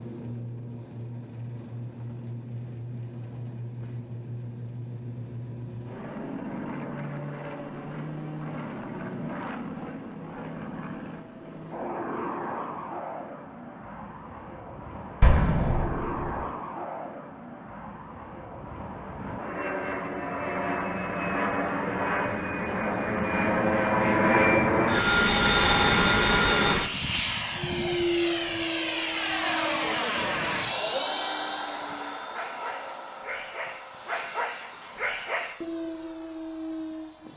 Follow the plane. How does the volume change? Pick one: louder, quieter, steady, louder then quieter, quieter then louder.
louder then quieter.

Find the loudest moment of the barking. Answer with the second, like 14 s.
28 s.